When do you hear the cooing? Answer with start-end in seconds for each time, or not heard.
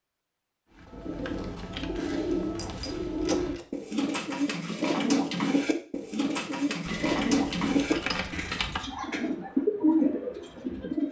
0.8-11.0.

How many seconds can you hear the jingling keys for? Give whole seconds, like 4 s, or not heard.
3 s.